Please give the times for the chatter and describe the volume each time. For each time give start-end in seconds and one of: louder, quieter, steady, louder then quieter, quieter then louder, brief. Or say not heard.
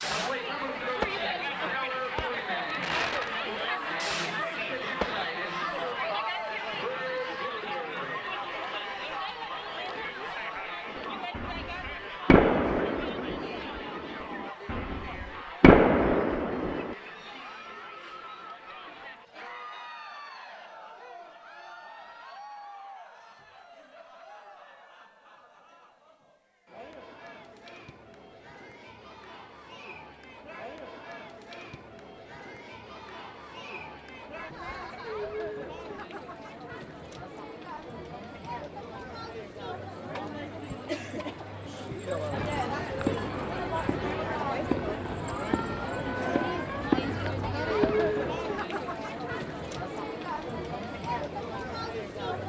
0.0-52.4 quieter then louder.